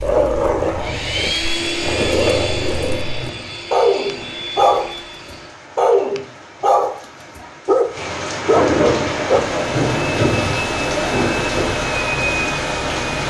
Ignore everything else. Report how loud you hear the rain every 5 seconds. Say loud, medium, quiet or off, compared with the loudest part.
quiet, loud, loud.